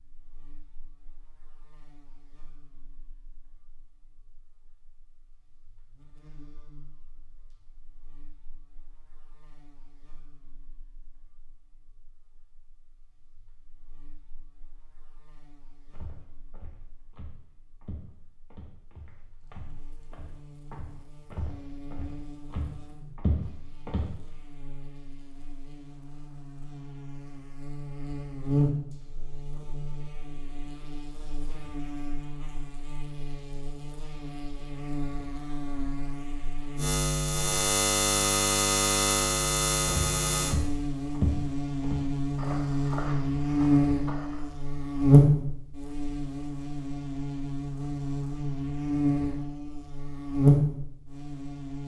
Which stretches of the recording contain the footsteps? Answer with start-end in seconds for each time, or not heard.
15.9-24.1, 39.9-44.5.